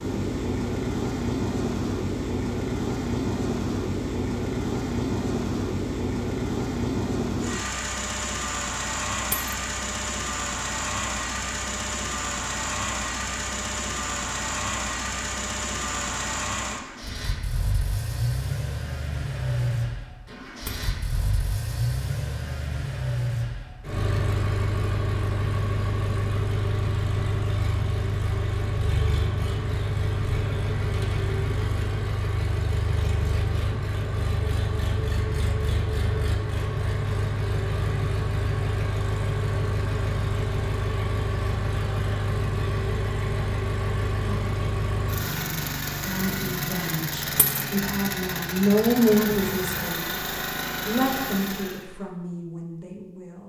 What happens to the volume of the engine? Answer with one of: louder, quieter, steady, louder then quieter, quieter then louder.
steady.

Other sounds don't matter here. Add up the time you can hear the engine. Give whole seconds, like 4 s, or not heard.
52 s.